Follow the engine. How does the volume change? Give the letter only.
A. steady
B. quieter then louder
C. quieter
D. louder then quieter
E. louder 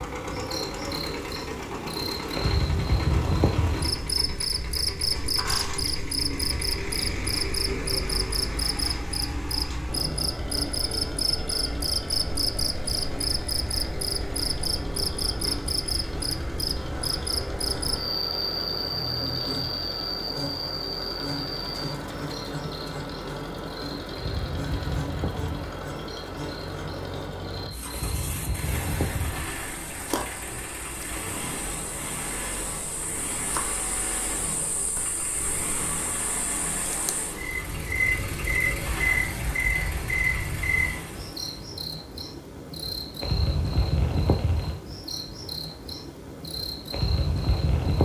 A.